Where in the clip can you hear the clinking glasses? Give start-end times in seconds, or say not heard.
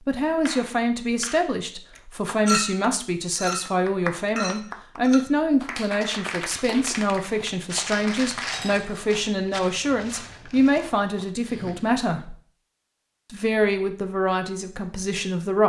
2.5-5.2, 8.5-9.2.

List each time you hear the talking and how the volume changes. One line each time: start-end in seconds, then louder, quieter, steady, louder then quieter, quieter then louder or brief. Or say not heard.
0.1-12.3 steady
13.3-15.6 brief.